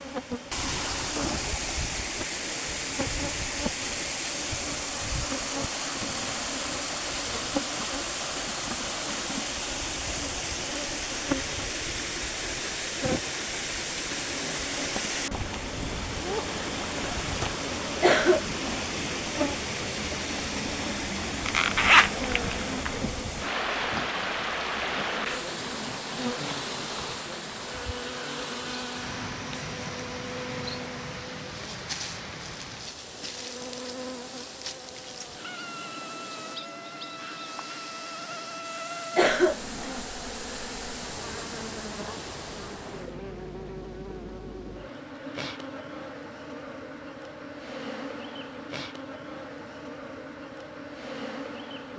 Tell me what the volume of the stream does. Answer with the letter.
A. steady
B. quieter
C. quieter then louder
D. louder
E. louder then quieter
B.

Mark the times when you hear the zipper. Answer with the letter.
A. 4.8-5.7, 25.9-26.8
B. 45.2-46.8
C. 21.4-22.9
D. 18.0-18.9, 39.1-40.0
C.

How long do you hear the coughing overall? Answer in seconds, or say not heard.
2 s.